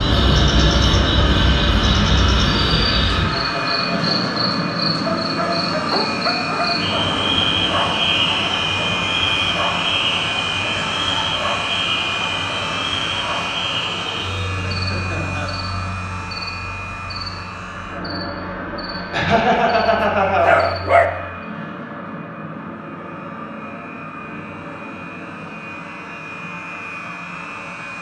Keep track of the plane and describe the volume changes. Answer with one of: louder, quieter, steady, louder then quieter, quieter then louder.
quieter.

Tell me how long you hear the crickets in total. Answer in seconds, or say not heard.
21 s.